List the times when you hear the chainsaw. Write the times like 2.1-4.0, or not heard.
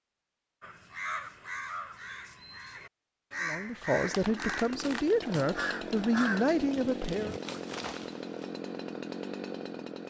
3.9-10.0.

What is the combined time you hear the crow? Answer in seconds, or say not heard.
7 s.